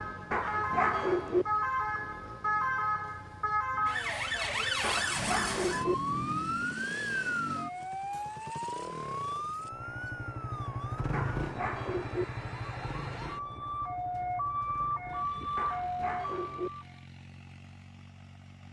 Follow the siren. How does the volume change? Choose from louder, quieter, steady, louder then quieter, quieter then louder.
quieter then louder.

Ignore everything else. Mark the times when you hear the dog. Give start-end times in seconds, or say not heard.
0.3-1.4, 4.8-6.0, 11.1-12.2, 15.6-16.7.